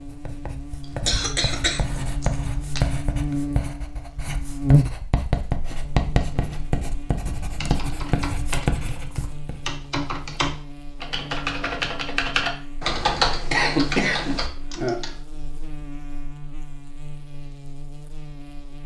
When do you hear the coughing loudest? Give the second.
14 s.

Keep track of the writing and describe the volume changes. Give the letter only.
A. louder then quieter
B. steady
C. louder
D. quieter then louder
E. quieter
C.